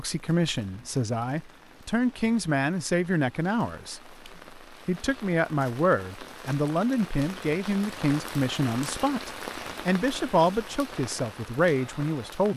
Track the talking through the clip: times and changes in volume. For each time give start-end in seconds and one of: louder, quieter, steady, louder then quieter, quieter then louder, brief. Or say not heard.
0.0-12.5 steady.